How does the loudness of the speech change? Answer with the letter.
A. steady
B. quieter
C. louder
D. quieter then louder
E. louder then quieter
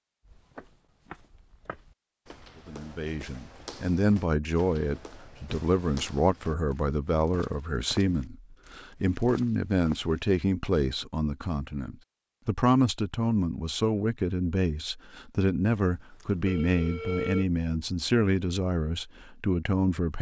A.